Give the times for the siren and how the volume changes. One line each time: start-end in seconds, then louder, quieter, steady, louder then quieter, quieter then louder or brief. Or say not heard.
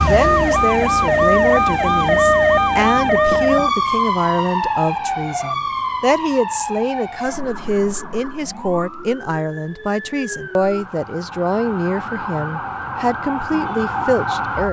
0.0-14.6 quieter then louder.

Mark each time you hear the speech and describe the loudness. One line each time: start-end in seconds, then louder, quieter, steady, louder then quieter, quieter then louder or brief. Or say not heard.
0.0-14.6 steady.